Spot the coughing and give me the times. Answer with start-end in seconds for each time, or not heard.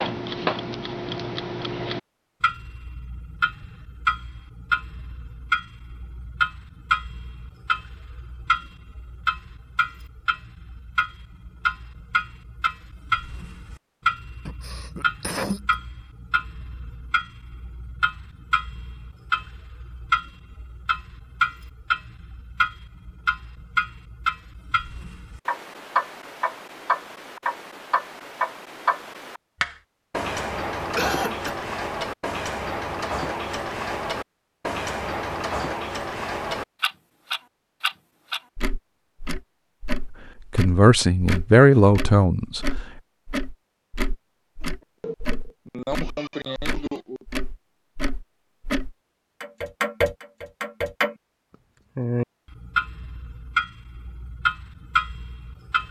14.4-15.8, 30.9-31.6, 44.6-47.2.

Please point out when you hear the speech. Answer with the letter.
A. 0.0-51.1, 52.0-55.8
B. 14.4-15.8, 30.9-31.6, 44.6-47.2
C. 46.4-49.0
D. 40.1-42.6
D.